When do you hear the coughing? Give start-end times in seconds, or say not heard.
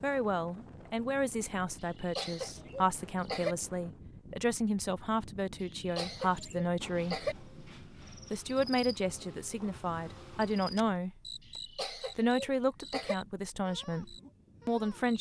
1.9-3.5, 5.6-7.3, 11.6-13.2.